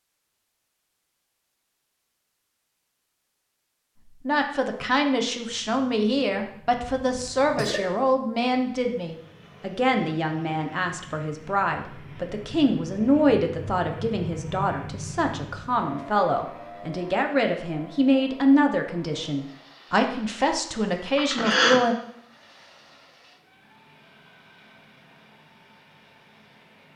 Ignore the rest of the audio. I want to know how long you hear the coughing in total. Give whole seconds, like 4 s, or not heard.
2 s.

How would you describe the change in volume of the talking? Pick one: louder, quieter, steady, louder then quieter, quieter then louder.
steady.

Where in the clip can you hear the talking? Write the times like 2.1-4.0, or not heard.
4.2-21.9.